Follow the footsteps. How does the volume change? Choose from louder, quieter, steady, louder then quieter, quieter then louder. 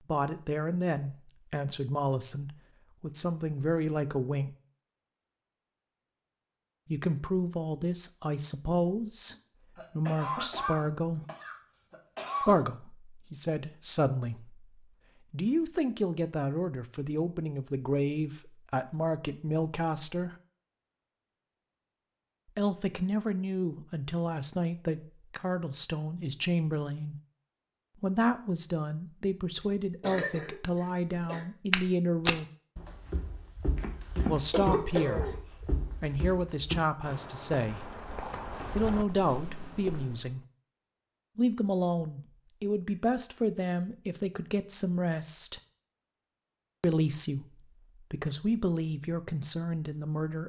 quieter.